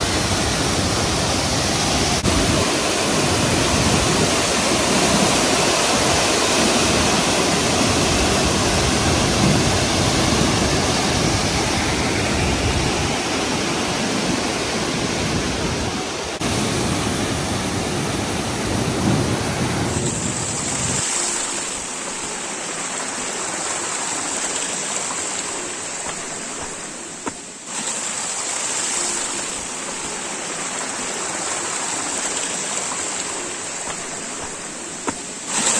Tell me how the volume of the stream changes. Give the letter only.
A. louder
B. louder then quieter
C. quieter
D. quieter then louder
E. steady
C.